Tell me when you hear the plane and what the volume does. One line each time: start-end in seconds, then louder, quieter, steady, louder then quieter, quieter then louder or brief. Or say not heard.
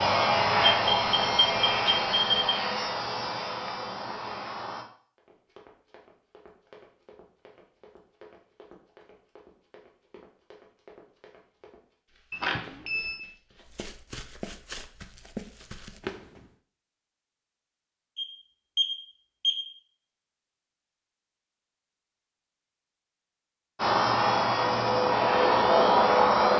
0.0-4.8 quieter
23.8-26.5 brief.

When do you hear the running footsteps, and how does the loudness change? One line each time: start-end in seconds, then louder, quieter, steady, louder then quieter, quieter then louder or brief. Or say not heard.
5.2-16.5 louder.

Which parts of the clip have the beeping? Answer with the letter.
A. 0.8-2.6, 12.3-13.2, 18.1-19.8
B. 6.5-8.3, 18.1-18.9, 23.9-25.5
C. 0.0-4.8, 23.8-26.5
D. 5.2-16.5
A.